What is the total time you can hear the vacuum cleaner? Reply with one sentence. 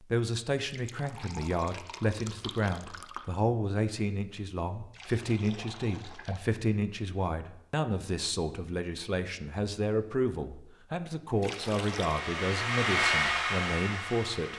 You can hear the vacuum cleaner for 3 seconds altogether.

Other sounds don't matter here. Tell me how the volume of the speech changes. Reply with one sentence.
The loudness of the speech stays about the same.